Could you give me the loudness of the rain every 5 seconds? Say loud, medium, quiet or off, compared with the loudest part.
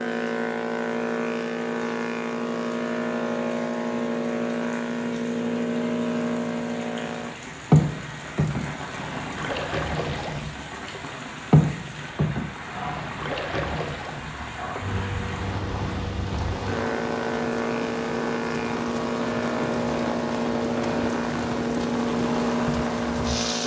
quiet, medium, medium, loud, loud.